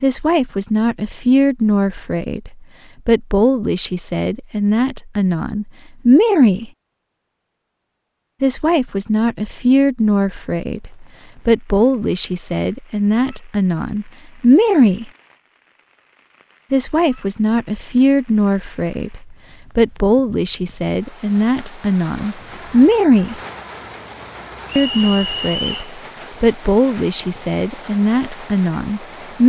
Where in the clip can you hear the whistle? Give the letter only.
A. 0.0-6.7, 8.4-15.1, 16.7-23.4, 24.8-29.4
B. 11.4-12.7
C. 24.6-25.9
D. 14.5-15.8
C.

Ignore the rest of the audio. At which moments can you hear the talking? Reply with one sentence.
You can hear the talking from 0.0 to 6.7 s, from 8.4 to 15.1 s, from 16.7 to 23.4 s and from 24.8 to 29.4 s.